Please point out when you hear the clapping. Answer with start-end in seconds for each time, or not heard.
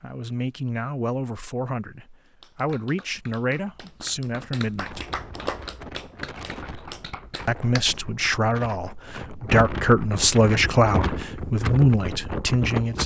2.2-8.3.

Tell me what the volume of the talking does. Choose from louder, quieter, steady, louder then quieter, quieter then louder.
louder.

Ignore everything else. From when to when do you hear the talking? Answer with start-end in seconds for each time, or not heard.
0.0-5.0, 7.5-13.0.